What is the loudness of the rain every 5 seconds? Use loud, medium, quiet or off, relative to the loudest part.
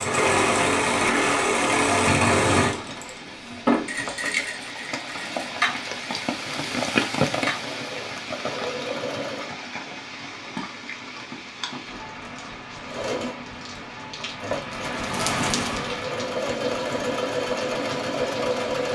medium, loud, medium, loud.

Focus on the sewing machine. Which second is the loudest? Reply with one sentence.
The loudest moment of the sewing machine is at 2 seconds.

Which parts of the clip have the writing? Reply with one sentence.
The writing can't be heard in this clip.